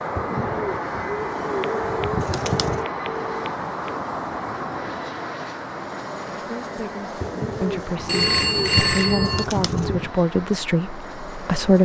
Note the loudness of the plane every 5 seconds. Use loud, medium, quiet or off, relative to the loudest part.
loud, medium, medium.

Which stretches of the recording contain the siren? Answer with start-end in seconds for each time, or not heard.
not heard.